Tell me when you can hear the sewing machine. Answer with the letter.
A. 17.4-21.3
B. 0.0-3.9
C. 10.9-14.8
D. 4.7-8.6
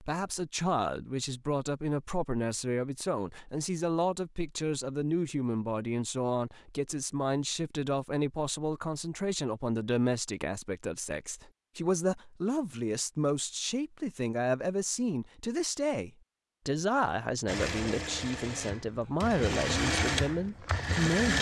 A.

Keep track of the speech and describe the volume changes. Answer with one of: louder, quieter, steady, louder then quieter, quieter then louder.
steady.